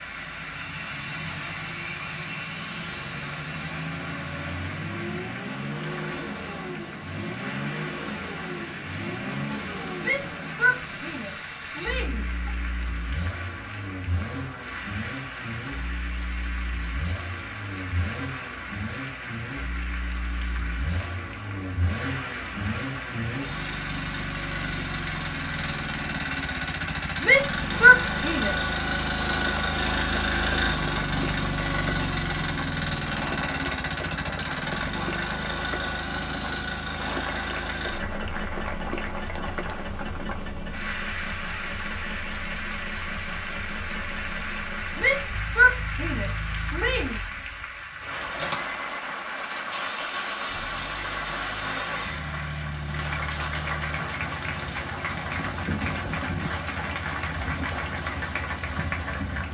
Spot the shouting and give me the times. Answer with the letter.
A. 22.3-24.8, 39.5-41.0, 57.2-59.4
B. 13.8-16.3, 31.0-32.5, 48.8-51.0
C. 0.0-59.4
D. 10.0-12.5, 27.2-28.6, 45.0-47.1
D.